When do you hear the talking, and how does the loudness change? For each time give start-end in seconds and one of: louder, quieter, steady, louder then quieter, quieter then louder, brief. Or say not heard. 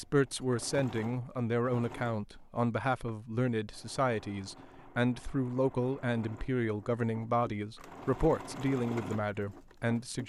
0.0-10.2 steady.